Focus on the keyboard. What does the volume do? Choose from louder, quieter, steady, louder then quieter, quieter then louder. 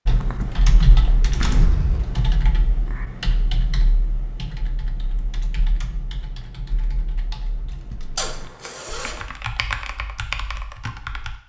quieter then louder.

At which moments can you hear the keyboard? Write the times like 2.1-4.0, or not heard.
0.1-11.4.